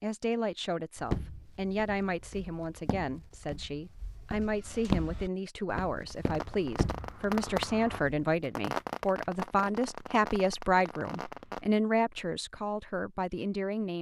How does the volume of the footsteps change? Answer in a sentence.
The loudness of the footsteps goes up, then down.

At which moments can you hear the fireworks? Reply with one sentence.
You can hear the fireworks from 6.0 to 11.7 s.